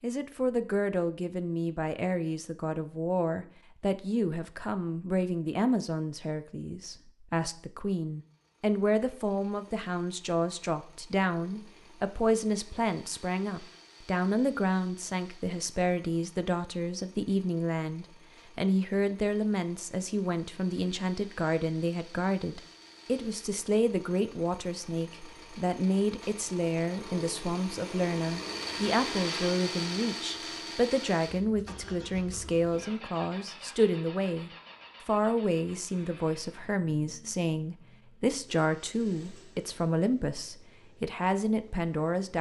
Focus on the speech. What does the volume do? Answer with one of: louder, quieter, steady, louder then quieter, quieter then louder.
steady.